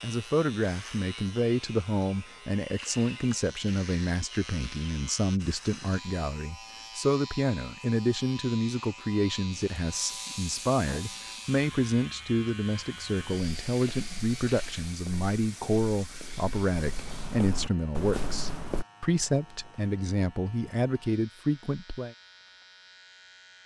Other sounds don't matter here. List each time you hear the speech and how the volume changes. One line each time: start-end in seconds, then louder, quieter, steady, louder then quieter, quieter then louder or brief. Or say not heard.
0.0-22.1 steady.